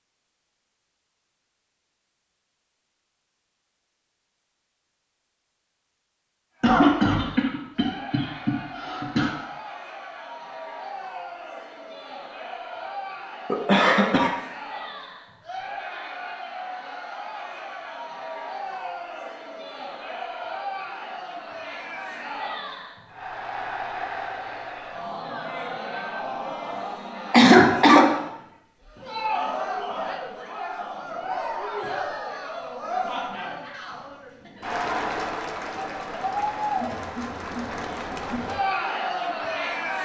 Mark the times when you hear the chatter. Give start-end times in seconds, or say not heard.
6.5-39.9.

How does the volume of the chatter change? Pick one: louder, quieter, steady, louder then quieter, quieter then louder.
louder.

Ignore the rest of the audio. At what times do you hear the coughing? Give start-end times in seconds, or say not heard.
6.6-9.3, 13.4-14.3, 27.3-28.1.